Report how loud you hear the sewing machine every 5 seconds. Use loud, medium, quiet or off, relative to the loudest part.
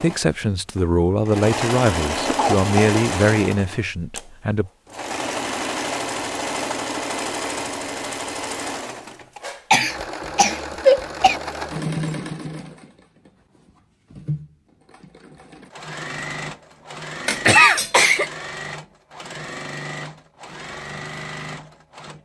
loud, loud, loud, medium, medium.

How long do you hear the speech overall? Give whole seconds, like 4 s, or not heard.
5 s.